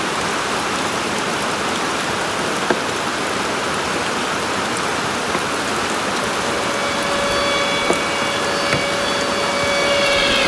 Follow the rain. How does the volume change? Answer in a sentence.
The loudness of the rain stays about the same.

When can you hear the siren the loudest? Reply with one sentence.
The volume of the siren peaks at 10 seconds.